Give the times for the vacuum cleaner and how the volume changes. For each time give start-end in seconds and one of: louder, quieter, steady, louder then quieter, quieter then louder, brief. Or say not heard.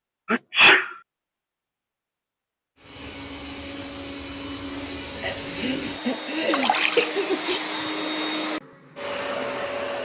2.8-10.0 louder.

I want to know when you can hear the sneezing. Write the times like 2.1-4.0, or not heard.
0.2-0.9, 5.2-7.6.